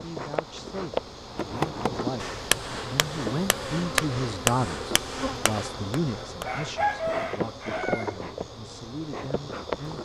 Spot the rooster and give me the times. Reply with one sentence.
You can hear the rooster from 6.5 to 8.2 s.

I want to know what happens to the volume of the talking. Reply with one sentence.
The loudness of the talking goes up, then down.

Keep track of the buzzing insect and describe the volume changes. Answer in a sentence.
The loudness of the buzzing insect stays about the same.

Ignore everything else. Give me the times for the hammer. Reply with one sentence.
The hammer can be heard from 1.4 to 7.2 s.